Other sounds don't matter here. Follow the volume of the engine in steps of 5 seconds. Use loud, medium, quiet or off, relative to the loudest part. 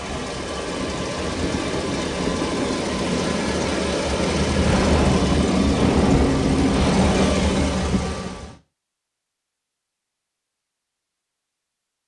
loud, loud, off.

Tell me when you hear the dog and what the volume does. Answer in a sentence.
You can't hear the dog here.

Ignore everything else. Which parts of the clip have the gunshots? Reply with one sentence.
You can hear the gunshots from 4.7 to 7.9 s.